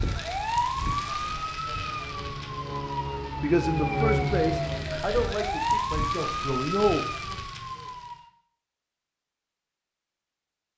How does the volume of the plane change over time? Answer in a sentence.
The volume of the plane goes up.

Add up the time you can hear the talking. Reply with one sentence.
You can hear the talking for 4 seconds altogether.